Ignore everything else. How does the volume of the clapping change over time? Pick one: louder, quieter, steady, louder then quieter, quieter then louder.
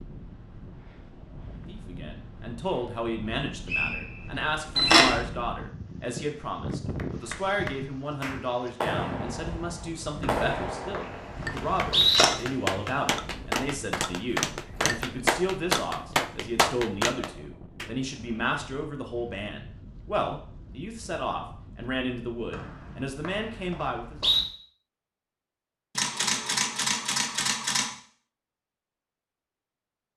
louder.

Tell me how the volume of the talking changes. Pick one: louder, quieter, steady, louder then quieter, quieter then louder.
steady.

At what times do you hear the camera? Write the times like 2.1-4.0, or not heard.
4.8-5.2, 11.4-12.3, 25.9-27.9.